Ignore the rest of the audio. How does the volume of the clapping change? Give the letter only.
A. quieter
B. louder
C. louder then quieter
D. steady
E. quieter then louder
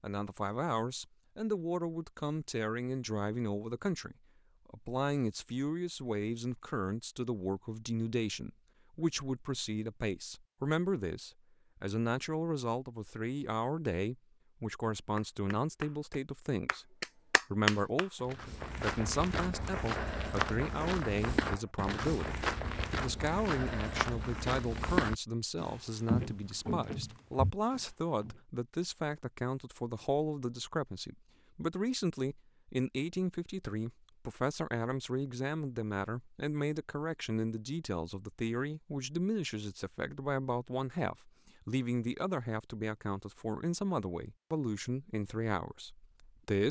C.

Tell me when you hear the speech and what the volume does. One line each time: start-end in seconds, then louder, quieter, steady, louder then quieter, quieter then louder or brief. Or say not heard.
0.0-46.6 steady.